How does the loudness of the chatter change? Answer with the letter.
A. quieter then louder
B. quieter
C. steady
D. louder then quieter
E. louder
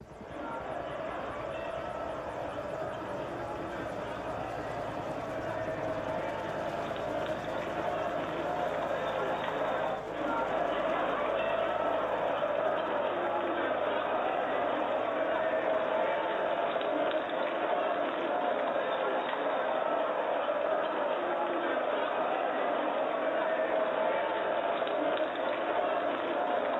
E.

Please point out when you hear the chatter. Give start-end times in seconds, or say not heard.
0.0-26.7.